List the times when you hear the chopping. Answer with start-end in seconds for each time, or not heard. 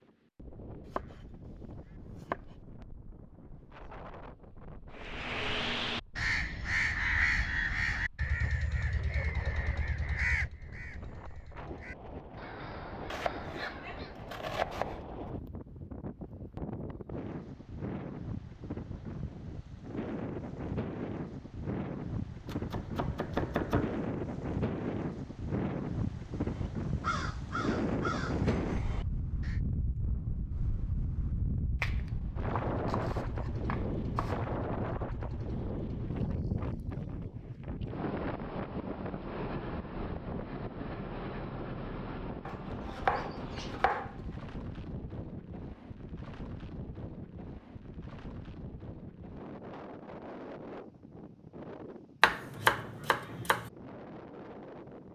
0.9-2.4, 13.1-15.1, 22.4-24.1, 31.8-34.5, 42.5-44.4, 52.2-53.6.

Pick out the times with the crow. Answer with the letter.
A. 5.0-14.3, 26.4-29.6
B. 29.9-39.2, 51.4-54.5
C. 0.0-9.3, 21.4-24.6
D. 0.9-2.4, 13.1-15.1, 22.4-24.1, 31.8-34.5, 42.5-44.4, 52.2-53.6
A.